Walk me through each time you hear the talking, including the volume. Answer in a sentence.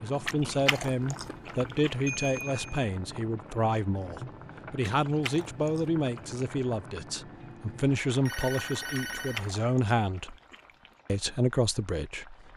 You can hear the talking from 0.0 to 10.3 s, at a steady volume; and briefly from 11.1 to 12.5 s.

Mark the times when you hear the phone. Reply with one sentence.
You can hear the phone from 2.0 to 2.9 s and from 8.2 to 9.5 s.